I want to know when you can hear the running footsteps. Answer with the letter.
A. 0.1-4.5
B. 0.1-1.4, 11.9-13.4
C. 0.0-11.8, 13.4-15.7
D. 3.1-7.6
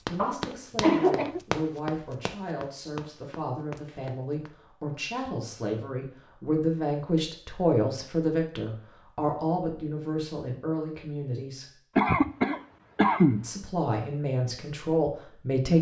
A.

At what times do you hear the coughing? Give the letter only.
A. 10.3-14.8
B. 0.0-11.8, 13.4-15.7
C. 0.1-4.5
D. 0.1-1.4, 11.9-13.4
D.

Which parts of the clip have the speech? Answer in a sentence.
You can hear the speech from 0.0 to 11.8 s and from 13.4 to 15.7 s.